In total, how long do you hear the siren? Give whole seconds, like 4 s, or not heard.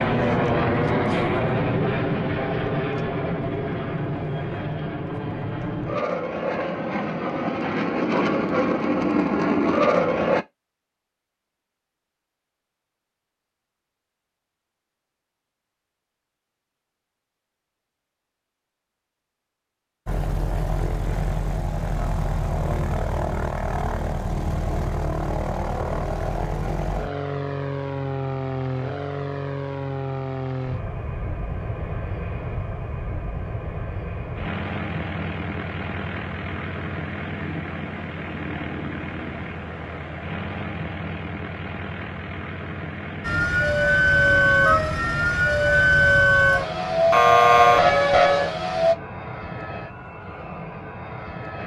6 s.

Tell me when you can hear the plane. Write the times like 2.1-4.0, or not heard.
0.0-10.4, 20.1-51.6.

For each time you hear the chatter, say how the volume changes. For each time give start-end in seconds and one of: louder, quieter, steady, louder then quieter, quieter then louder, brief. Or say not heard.
not heard.